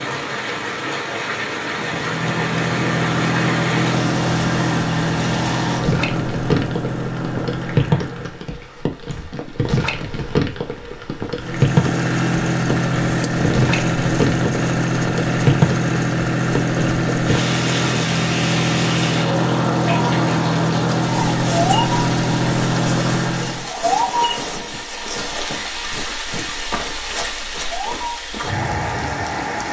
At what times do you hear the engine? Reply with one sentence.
The engine can be heard from 1.6 to 8.5 s and from 11.3 to 23.7 s.